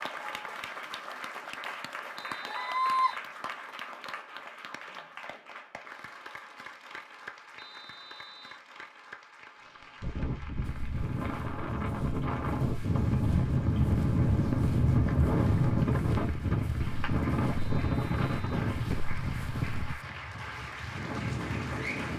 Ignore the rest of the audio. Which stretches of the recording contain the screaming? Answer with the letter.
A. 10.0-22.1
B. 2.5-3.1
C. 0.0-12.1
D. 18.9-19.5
B.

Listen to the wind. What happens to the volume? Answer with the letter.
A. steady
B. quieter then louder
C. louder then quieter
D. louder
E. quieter
C.